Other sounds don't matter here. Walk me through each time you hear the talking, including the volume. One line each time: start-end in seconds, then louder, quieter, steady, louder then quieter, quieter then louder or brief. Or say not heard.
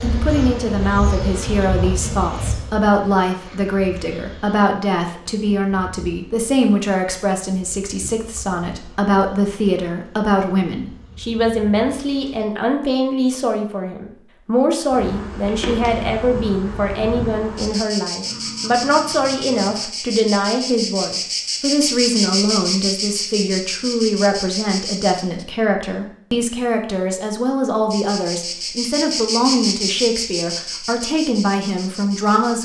0.0-32.5 steady.